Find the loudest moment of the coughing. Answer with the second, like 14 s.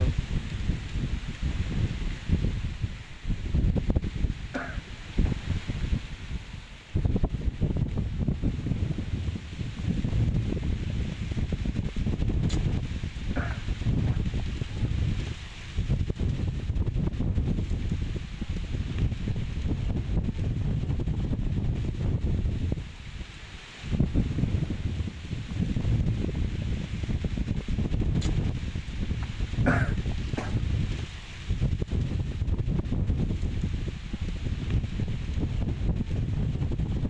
30 s.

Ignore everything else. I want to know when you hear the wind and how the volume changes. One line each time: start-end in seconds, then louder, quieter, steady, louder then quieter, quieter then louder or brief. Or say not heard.
0.0-37.0 steady.